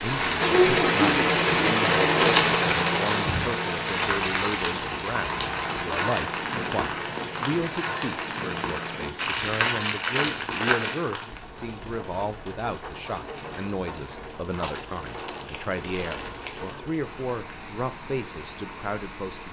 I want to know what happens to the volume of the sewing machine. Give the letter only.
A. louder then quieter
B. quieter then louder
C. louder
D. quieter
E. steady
D.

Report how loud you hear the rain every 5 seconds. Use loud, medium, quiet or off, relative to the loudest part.
loud, medium, quiet, quiet.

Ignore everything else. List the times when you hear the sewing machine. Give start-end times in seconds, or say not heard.
0.2-9.1.